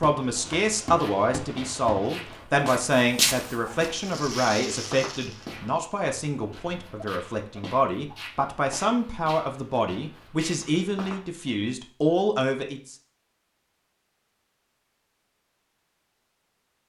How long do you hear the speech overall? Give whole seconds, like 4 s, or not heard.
13 s.